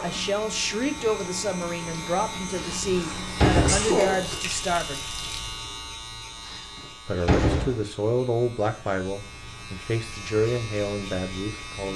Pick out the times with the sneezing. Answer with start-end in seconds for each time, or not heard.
3.0-4.3.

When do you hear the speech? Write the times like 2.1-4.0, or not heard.
0.0-5.0, 7.0-11.9.